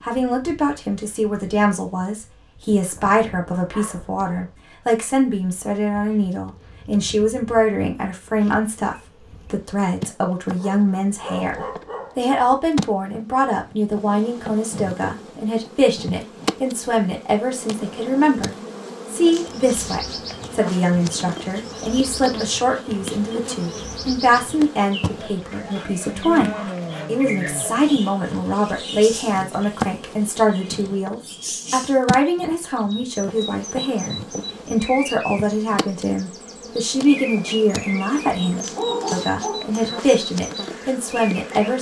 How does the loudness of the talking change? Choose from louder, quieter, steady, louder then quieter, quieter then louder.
steady.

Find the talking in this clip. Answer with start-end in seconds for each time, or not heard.
0.0-41.7.